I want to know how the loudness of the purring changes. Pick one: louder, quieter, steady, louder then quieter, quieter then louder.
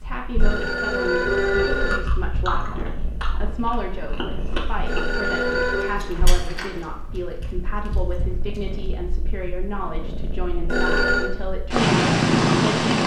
louder.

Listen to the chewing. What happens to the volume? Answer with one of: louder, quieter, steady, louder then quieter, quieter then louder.
quieter.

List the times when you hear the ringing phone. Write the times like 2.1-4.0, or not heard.
0.3-2.0, 4.8-6.0, 10.7-11.3.